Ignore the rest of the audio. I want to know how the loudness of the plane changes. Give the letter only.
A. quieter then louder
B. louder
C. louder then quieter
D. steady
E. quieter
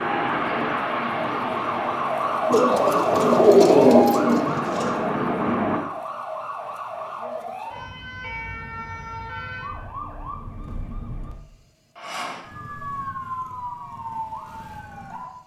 A.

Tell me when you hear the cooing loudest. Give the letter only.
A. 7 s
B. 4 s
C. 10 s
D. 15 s
B.